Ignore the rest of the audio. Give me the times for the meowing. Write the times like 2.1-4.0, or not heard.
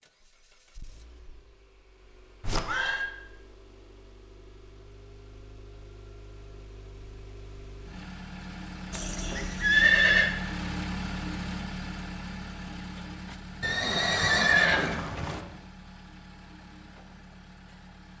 not heard.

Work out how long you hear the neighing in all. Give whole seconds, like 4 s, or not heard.
4 s.